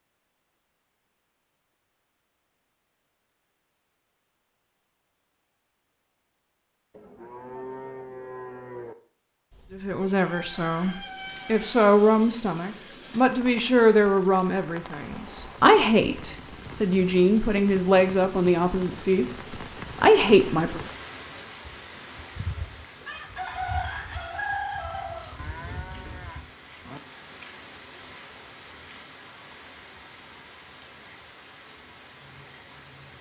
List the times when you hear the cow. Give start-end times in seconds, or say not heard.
6.9-8.9, 25.4-27.0.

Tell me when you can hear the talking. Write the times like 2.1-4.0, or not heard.
9.7-19.2, 20.0-20.8.